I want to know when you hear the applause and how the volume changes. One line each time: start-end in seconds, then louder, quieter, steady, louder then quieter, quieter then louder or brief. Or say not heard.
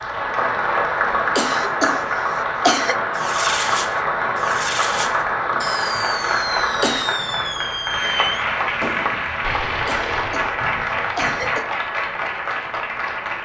0.0-13.4 steady.